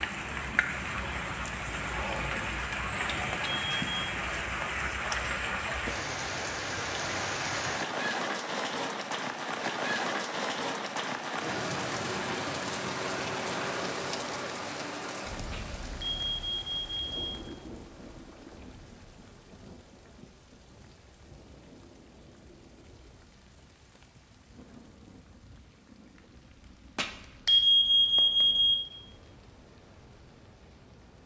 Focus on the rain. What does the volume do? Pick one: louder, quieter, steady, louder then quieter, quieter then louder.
quieter.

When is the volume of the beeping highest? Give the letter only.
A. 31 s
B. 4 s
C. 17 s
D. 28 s
D.